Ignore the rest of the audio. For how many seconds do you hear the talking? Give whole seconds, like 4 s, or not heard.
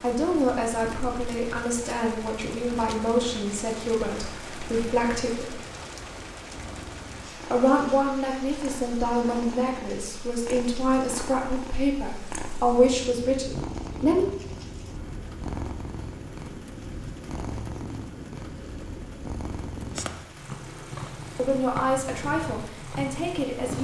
15 s.